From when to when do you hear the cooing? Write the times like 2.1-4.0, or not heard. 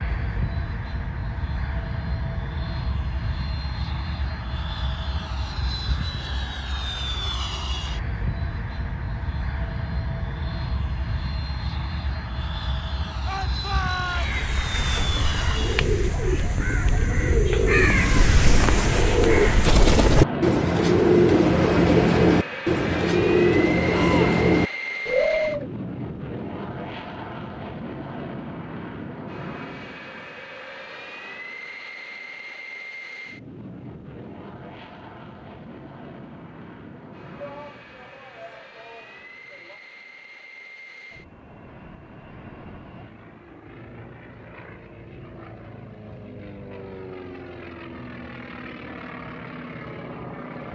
14.1-25.6.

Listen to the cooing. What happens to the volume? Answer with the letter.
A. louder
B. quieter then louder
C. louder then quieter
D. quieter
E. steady
A.